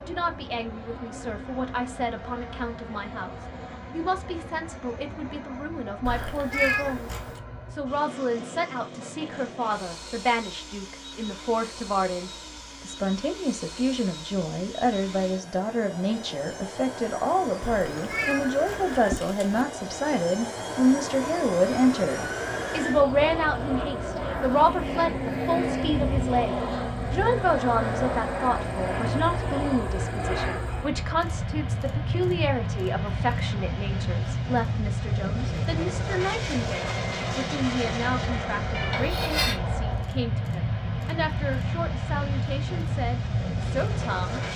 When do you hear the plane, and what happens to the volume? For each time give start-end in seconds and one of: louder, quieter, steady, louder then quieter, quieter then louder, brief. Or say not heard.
0.0-44.5 louder.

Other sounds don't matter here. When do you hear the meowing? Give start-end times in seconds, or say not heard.
6.0-7.4, 17.6-19.6, 38.7-39.6.